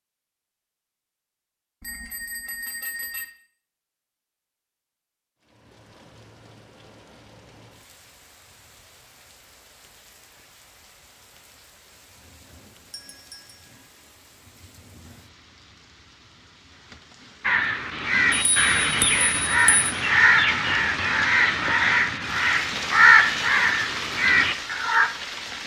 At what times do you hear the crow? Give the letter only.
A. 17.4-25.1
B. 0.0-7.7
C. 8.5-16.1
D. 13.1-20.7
A.